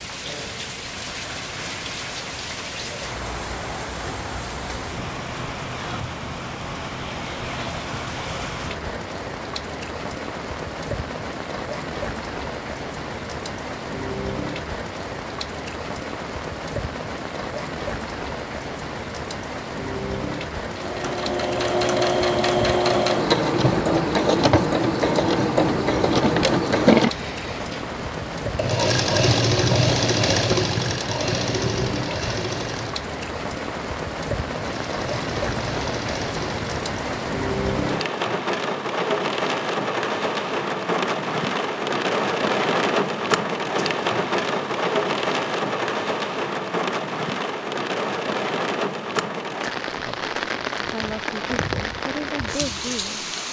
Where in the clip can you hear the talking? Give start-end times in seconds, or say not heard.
49.9-53.4.